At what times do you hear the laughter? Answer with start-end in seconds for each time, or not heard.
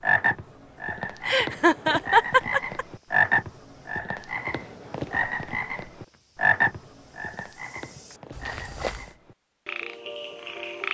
1.2-2.9.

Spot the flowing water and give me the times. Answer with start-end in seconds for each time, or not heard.
not heard.